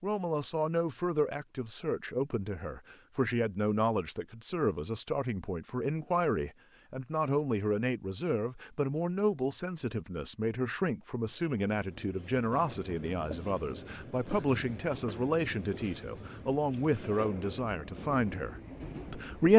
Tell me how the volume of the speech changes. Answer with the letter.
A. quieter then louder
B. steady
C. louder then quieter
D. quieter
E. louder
B.